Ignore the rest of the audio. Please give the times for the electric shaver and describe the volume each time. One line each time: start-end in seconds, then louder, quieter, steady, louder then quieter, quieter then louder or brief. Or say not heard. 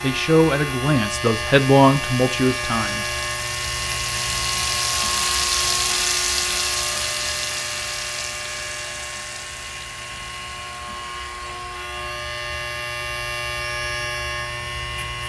0.0-15.2 quieter then louder.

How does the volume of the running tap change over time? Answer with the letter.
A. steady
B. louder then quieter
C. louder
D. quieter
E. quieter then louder
B.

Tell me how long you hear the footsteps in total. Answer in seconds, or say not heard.
not heard.